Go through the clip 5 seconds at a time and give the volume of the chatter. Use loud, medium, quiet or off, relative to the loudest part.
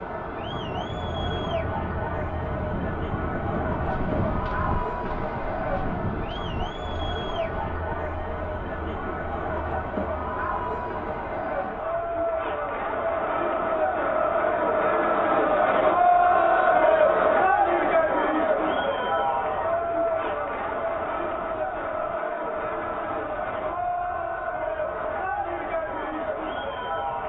medium, medium, medium, loud, medium, medium.